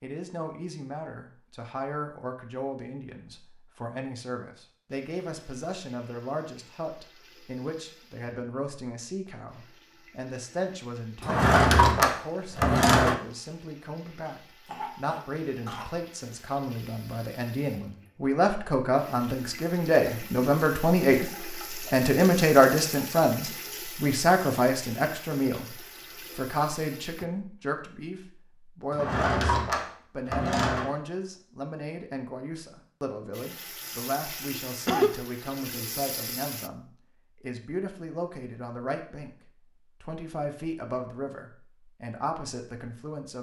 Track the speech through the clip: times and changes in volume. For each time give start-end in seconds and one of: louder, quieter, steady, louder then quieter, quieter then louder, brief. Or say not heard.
0.0-43.3 louder then quieter.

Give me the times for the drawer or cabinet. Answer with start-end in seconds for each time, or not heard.
11.2-13.2, 28.9-30.9.